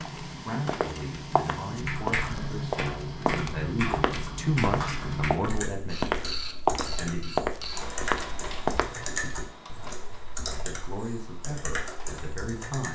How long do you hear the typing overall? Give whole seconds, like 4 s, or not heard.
11 s.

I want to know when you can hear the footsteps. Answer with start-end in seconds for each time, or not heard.
0.1-9.3.